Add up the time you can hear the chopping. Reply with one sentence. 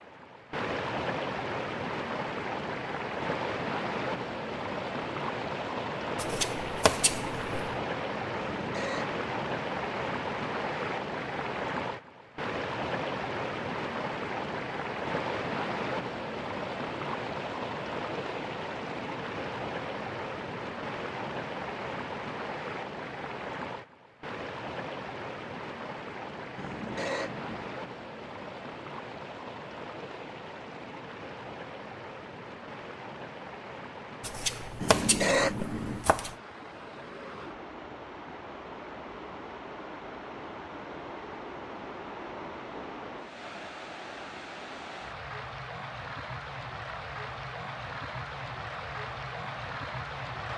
The chopping can be heard for 4 seconds in total.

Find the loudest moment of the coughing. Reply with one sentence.
The volume of the coughing peaks at 35 seconds.